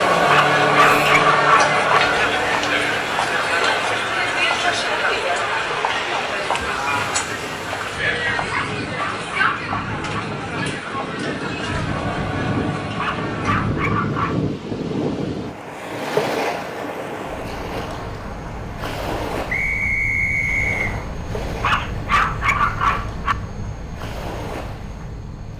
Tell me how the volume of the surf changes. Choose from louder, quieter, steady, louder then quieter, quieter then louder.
louder then quieter.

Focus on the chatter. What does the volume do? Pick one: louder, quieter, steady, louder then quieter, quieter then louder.
quieter.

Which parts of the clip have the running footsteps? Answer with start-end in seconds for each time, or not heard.
not heard.